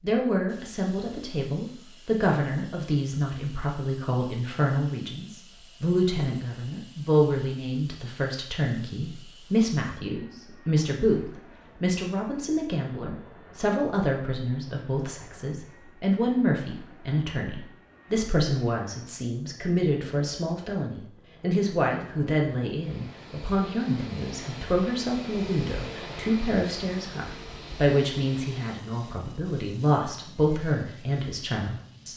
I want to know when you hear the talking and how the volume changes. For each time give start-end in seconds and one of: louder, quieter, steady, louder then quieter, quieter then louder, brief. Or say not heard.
0.0-32.1 steady.